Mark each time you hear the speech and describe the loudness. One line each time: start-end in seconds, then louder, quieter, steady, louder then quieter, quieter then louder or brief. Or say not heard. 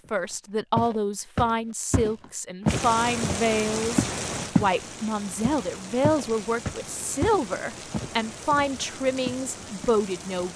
0.1-10.5 steady.